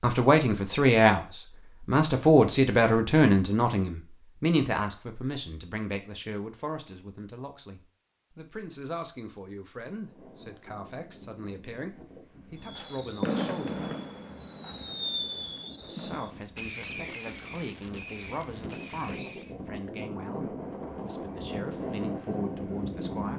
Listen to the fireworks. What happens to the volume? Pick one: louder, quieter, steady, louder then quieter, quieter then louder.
quieter.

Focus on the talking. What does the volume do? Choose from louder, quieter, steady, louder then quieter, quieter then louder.
quieter.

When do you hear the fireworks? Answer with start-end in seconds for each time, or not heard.
12.6-19.6.